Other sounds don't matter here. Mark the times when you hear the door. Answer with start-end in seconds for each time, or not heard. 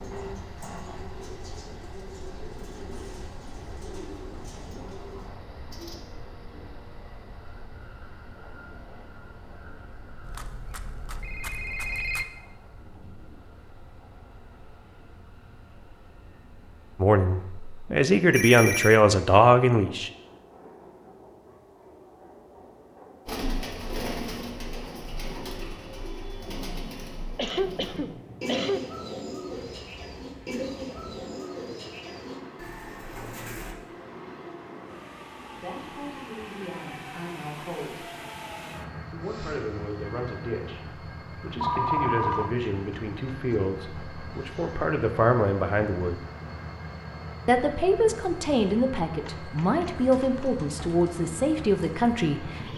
not heard.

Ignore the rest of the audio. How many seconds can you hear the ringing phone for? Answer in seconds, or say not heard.
4 s.